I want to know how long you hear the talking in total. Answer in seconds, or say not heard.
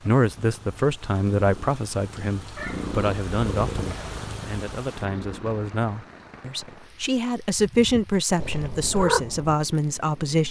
10 s.